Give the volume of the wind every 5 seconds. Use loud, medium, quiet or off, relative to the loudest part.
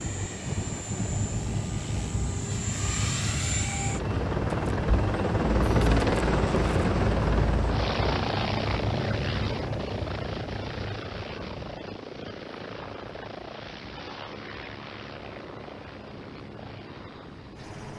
loud, loud, medium, quiet.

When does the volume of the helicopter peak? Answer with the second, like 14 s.
6 s.